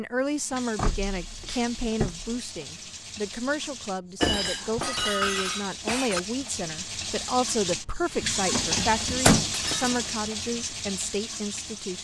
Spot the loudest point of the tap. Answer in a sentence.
The loudest moment of the tap is at 9 seconds.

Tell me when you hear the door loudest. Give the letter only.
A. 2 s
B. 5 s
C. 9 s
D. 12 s
C.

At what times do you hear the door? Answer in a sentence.
The door can be heard from 0.8 to 2.4 s, from 4.2 to 4.9 s and from 8.5 to 9.5 s.